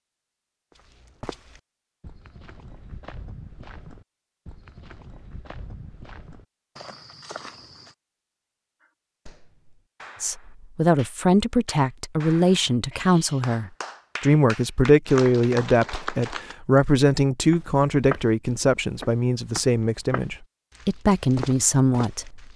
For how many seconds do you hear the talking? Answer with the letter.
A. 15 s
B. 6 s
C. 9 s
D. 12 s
D.